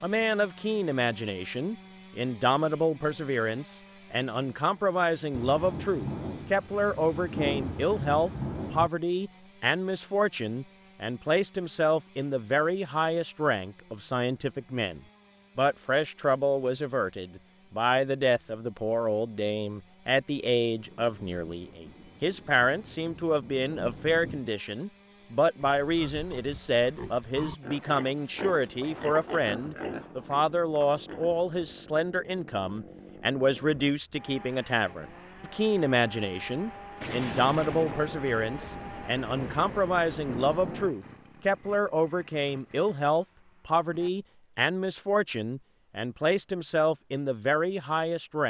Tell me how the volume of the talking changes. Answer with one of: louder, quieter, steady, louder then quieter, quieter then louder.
steady.